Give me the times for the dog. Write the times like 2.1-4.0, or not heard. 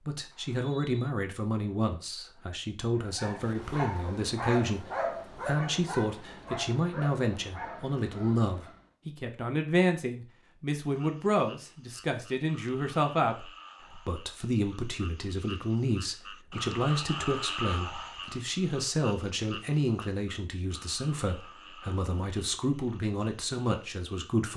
3.0-8.9.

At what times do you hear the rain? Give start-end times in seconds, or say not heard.
not heard.